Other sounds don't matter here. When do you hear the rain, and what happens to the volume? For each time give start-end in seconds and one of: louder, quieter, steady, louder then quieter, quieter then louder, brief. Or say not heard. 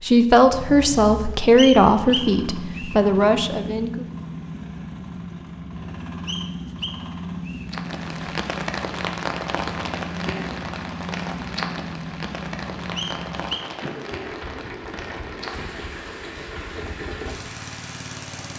7.7-18.5 quieter.